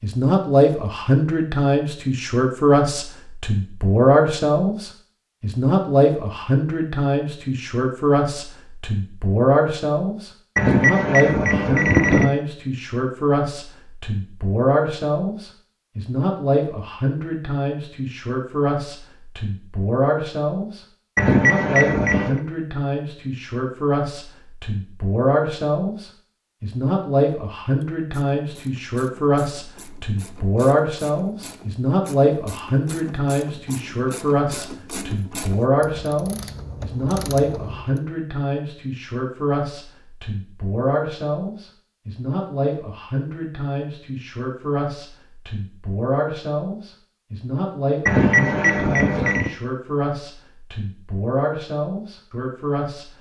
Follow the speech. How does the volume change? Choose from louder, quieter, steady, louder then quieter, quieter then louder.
quieter.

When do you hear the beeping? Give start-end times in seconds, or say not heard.
10.6-12.3, 21.1-22.4, 48.0-49.5.